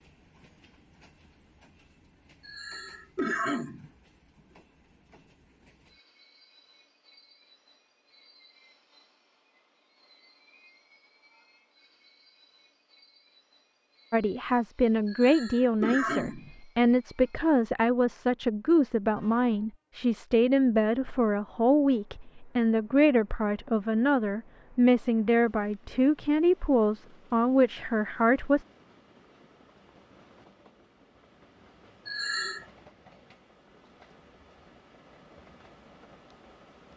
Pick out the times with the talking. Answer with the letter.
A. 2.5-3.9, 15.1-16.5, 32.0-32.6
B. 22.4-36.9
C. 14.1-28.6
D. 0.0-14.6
C.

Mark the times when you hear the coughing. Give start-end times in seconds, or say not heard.
2.5-3.9, 15.1-16.5, 32.0-32.6.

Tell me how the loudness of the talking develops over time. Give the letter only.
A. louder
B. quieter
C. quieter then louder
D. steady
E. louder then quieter
D.